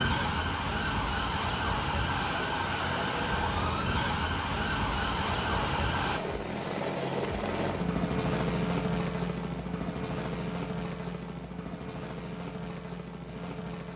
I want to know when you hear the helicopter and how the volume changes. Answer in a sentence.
The helicopter can be heard from 0.2 to 13.9 s, getting louder then quieter.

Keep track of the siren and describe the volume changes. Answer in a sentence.
The loudness of the siren stays about the same.